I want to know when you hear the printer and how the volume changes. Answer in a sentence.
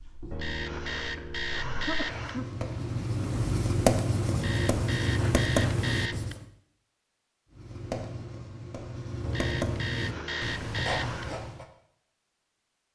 The printer can't be heard in this clip.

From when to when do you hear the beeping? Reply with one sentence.
You can hear the beeping from 0.3 to 2.3 s, from 4.3 to 6.3 s and from 9.2 to 11.2 s.